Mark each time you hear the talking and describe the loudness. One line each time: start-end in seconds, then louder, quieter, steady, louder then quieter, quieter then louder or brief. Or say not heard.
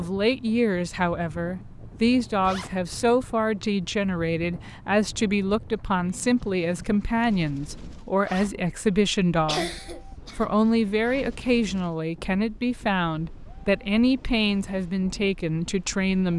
0.0-16.3 steady.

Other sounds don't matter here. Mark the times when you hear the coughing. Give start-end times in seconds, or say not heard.
9.4-10.5.